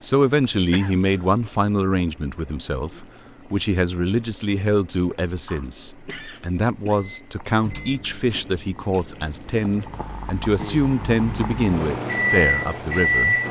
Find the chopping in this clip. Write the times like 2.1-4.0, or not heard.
not heard.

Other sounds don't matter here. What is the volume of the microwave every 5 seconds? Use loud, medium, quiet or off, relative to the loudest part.
off, quiet, loud.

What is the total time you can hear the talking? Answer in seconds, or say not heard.
13 s.